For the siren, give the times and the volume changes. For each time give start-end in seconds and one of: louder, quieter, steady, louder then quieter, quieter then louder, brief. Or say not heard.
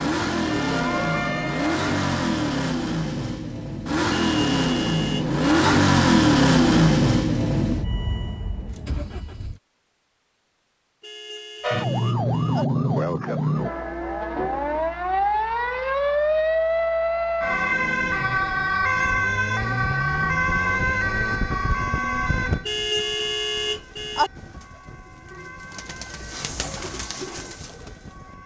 0.2-2.6 brief
11.6-28.4 quieter.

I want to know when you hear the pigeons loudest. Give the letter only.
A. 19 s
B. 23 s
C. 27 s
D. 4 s
C.